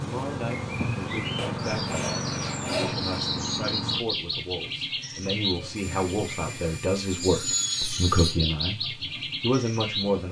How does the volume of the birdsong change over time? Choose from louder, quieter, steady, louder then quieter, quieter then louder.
steady.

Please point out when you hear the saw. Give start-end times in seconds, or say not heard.
1.4-3.2, 5.8-8.3.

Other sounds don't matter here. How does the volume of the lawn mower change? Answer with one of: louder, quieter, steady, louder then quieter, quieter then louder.
steady.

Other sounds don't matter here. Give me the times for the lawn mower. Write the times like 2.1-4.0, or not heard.
0.0-4.0.